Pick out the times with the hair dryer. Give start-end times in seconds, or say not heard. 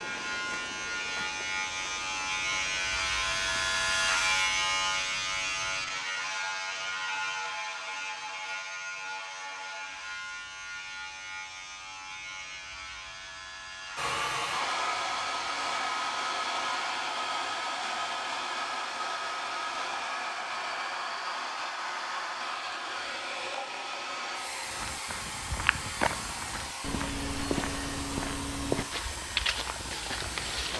13.9-30.7.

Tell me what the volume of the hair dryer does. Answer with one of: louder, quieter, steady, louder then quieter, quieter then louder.
quieter.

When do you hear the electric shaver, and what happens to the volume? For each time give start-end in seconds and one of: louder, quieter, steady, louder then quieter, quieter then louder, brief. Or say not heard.
0.0-17.1 quieter.